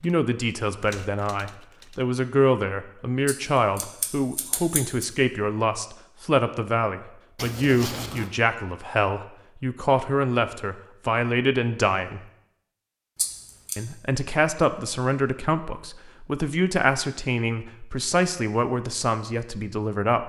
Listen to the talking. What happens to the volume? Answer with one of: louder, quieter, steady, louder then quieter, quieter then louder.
steady.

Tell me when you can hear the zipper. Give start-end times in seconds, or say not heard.
7.3-8.3.